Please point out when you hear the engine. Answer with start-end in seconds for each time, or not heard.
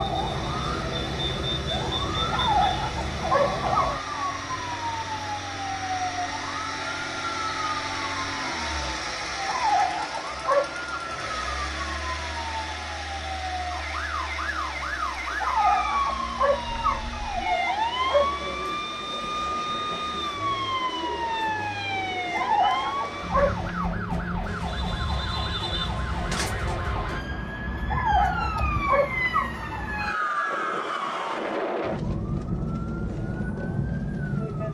0.0-24.0.